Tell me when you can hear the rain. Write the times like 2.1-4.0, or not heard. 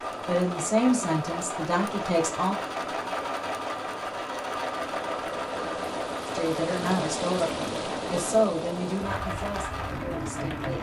0.0-10.7.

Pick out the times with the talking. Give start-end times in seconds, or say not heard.
0.2-2.6, 6.2-10.7.